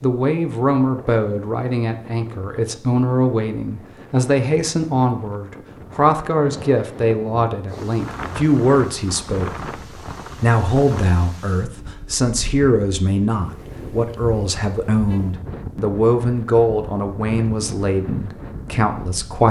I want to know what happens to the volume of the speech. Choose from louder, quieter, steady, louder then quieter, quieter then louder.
steady.